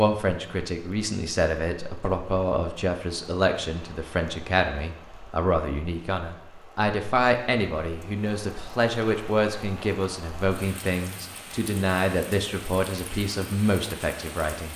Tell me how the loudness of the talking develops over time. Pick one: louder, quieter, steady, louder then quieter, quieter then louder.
steady.